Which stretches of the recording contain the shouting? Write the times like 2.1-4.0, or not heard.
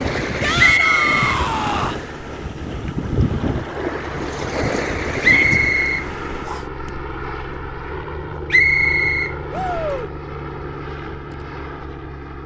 0.4-2.0, 5.2-5.6, 9.5-10.1.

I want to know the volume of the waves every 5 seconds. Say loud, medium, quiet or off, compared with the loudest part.
loud, loud, off.